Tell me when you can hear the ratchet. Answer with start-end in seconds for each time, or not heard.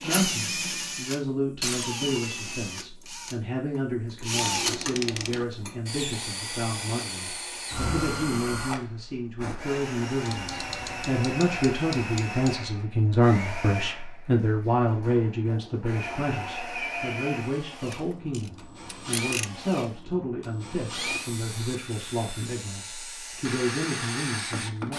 4.3-5.5, 10.2-12.6, 17.9-19.5.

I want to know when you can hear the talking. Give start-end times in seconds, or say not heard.
0.0-24.9.